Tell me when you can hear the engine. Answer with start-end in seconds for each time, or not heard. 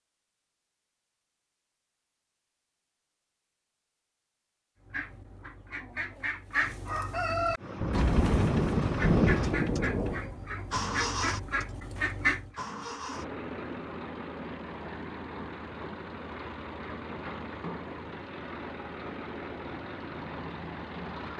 7.5-21.3.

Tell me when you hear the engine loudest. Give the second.
11 s.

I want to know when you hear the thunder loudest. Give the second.
9 s.